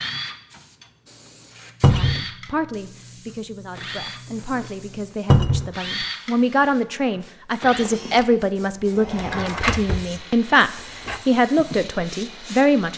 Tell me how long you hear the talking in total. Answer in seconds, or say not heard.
11 s.